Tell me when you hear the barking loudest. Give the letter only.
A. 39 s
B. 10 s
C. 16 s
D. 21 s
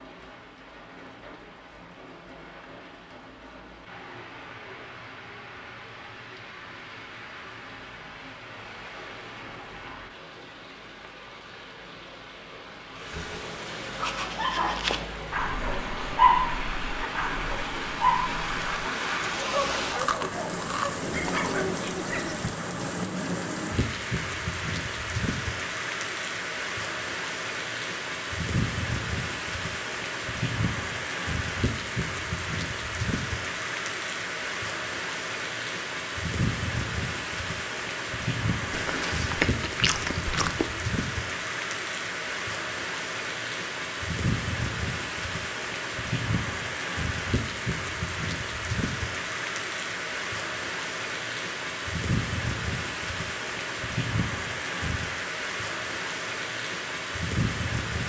C.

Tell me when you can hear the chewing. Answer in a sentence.
The chewing can be heard from 19.9 to 21.6 s and from 38.7 to 40.7 s.